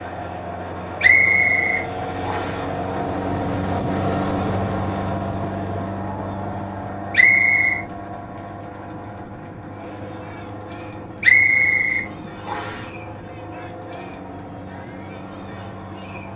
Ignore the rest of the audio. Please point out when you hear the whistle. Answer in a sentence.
The whistle can be heard from 1.0 to 2.6 s, from 7.1 to 7.8 s and from 11.2 to 12.8 s.